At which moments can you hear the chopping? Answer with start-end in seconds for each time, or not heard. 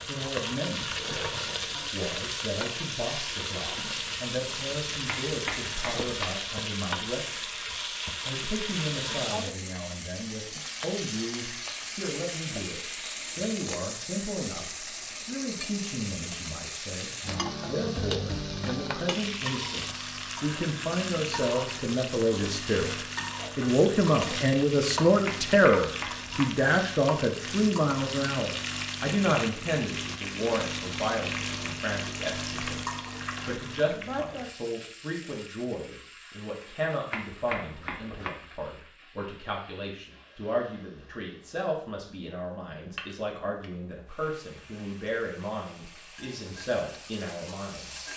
5.0-6.3, 25.2-26.5, 37.1-38.4.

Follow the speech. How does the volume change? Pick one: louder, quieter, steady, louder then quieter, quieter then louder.
louder then quieter.